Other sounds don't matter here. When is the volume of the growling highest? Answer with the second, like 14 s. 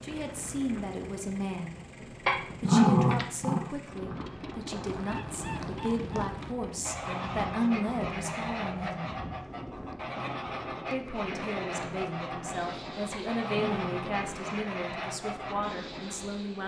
3 s.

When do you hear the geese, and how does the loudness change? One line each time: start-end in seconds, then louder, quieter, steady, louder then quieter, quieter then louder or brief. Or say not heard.
4.8-15.6 steady.